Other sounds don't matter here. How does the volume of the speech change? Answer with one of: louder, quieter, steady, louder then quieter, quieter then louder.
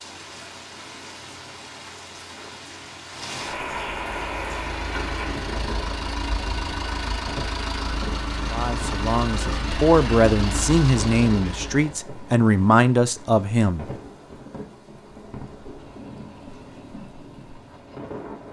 louder.